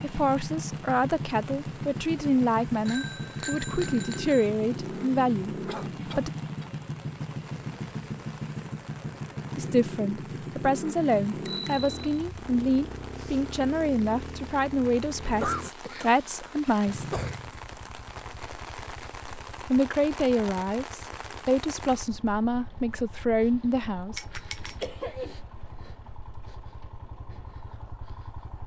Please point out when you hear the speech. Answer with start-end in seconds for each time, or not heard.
0.0-6.3, 9.6-17.2, 19.7-24.3.